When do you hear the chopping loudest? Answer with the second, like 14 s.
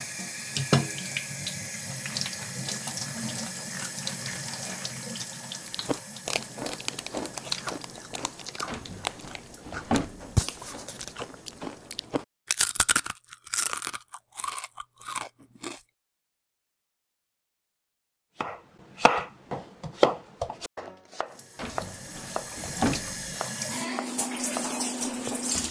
20 s.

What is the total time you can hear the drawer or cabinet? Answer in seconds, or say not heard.
4 s.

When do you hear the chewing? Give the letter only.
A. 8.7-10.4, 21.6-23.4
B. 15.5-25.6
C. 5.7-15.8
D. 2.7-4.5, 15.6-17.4
C.